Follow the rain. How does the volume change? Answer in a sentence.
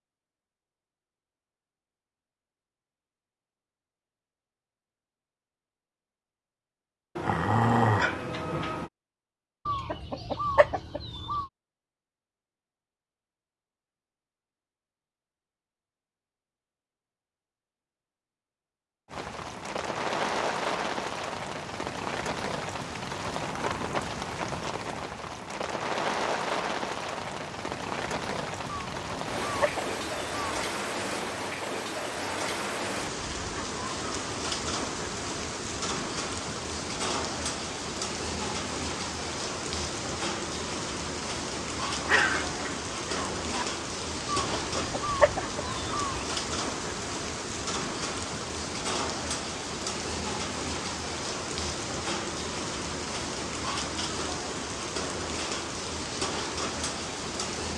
The volume of the rain stays about the same.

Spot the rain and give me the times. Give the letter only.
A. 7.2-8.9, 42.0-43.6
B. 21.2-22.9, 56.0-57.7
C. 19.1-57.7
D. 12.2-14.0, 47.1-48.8
C.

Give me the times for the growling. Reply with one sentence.
You can hear the growling from 7.2 to 8.9 s and from 42.0 to 43.6 s.